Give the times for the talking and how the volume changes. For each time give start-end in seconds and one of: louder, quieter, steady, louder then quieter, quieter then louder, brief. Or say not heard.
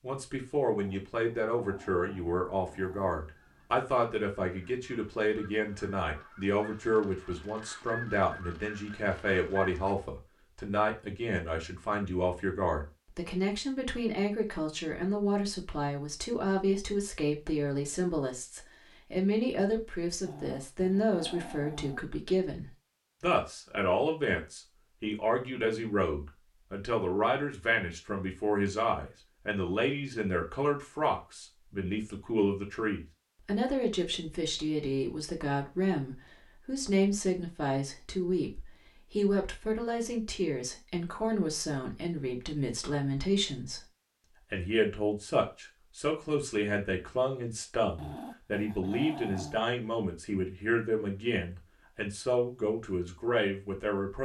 0.0-43.9 steady
44.5-54.1 steady.